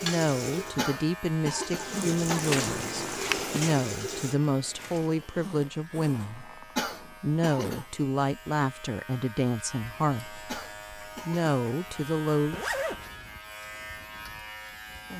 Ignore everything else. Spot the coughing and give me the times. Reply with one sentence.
You can hear the coughing from 0.8 to 2.5 s, from 6.8 to 7.8 s and from 10.4 to 11.4 s.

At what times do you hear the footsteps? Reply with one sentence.
You can hear the footsteps from 2.3 to 5.3 s.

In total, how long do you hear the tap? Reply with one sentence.
The tap can be heard for 4 seconds in total.